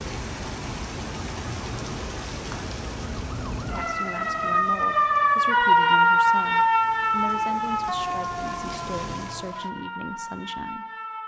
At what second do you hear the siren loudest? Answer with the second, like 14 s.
6 s.